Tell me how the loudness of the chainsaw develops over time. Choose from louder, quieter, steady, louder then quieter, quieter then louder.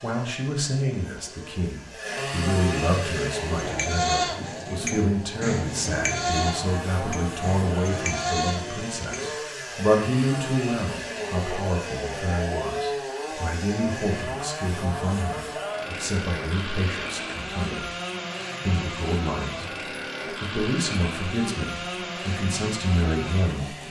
steady.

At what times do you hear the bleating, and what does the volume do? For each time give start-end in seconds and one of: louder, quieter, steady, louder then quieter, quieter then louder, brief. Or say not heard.
3.1-9.3 quieter then louder.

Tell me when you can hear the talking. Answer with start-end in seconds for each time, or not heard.
0.0-17.9, 18.6-19.7, 20.4-23.8.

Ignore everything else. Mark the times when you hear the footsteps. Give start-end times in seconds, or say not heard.
not heard.